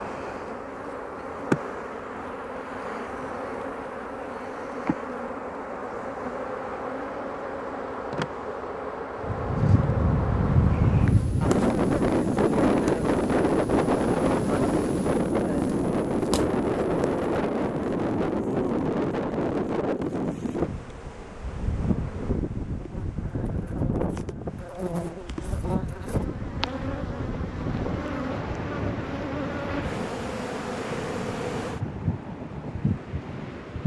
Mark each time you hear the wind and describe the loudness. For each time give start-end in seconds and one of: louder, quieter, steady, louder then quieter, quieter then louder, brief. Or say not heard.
9.2-33.8 quieter.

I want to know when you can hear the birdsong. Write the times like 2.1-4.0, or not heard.
not heard.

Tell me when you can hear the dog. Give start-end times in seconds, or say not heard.
not heard.